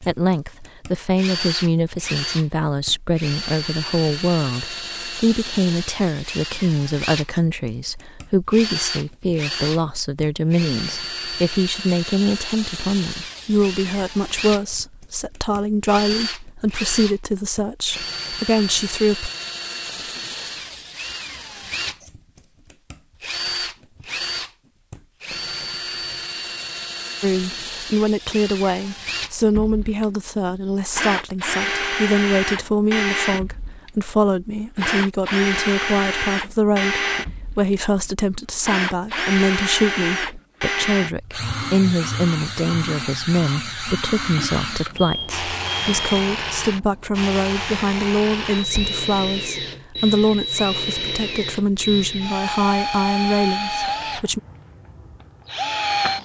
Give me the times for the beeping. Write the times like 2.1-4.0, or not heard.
45.0-46.5.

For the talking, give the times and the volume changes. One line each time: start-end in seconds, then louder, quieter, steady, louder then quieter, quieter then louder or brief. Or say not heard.
0.0-19.3 steady
27.2-54.4 steady.